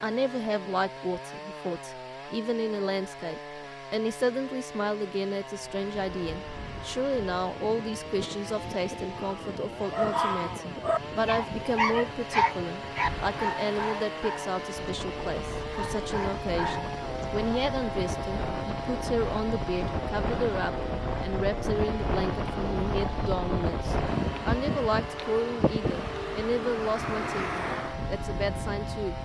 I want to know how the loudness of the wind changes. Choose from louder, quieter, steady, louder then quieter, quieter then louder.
louder.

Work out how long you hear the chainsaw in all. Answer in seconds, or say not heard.
29 s.